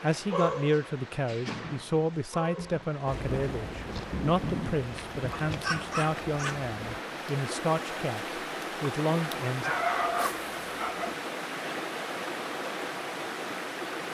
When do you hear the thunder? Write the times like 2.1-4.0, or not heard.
3.0-7.0.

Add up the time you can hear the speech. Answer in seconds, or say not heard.
10 s.